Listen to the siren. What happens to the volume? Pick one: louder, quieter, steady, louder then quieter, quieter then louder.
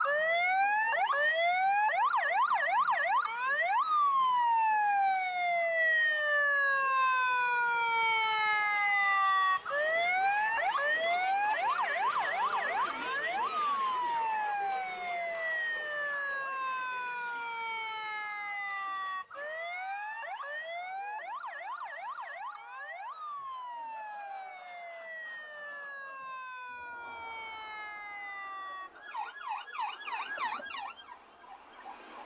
quieter.